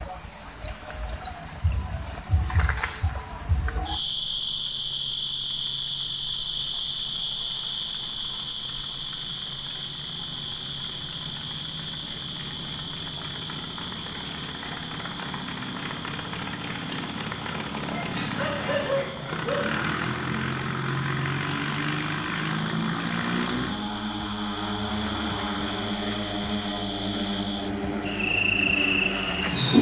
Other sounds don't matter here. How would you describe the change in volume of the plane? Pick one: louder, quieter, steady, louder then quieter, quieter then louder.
louder.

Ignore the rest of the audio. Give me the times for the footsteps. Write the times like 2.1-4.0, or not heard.
not heard.